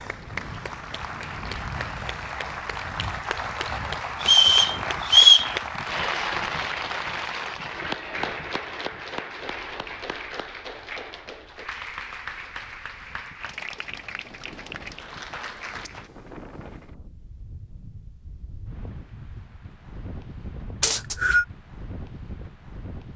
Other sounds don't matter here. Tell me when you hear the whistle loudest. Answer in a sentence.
The loudest moment of the whistle is at 5 seconds.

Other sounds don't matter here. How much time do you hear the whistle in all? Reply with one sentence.
You can hear the whistle for 2 seconds altogether.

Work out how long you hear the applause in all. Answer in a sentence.
The applause can be heard for 16 seconds in total.